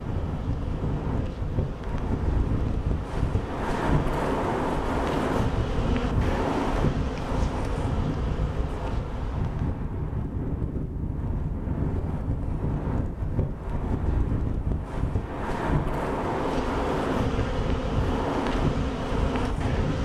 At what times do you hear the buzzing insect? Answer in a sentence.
The buzzing insect can be heard from 0.0 to 9.8 s and from 16.1 to 20.0 s.